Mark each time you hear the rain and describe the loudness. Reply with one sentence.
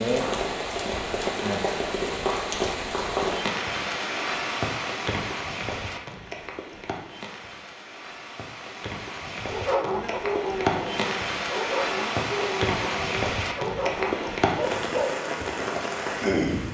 You can hear the rain from 0.0 to 16.6 s, getting quieter then louder.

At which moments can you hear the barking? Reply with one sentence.
You can hear the barking from 9.4 to 15.2 s.